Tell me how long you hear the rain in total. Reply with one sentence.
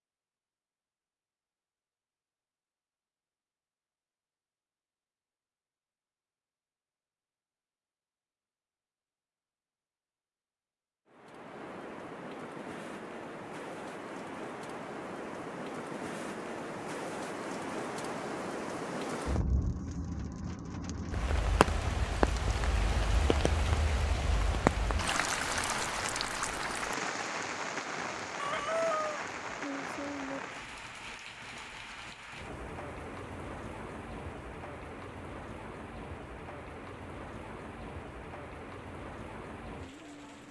You can hear the rain for 29 seconds altogether.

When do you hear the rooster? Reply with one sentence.
You can hear the rooster from 28.4 to 30.4 s.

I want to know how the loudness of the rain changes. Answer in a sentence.
The loudness of the rain goes up, then down.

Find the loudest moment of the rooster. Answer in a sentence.
The volume of the rooster peaks at 29 seconds.